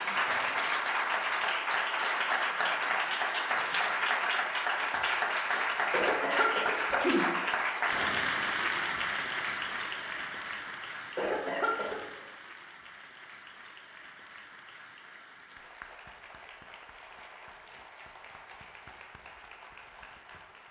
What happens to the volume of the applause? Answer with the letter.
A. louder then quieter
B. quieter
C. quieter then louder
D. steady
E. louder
B.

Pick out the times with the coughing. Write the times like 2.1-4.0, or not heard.
5.9-7.3, 11.2-12.2.